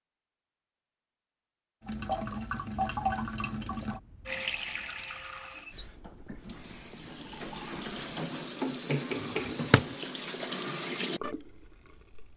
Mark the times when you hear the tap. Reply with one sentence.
The tap can be heard from 1.9 to 12.3 s.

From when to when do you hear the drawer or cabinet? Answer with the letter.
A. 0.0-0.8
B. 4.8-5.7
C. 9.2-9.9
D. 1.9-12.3
C.